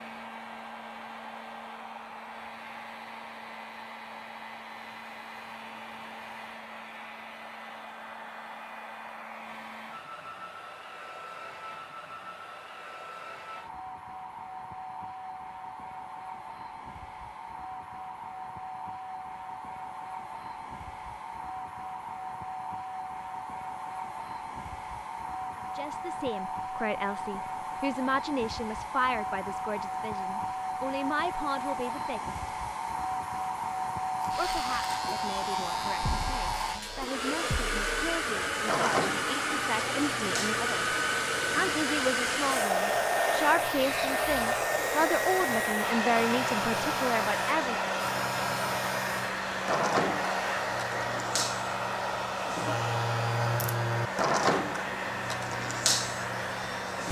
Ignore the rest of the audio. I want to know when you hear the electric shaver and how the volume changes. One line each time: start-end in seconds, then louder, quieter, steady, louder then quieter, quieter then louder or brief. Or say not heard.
34.2-57.0 quieter then louder.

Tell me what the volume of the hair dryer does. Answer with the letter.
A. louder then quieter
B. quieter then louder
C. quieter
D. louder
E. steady
D.